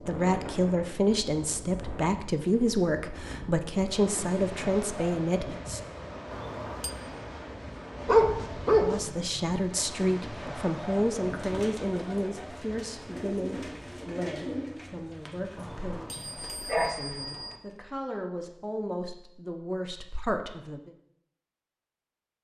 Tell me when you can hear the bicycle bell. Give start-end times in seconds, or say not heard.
6.3-7.0, 15.6-17.6.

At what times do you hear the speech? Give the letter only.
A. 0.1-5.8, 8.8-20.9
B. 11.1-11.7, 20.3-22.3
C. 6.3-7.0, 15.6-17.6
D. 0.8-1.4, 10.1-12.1
A.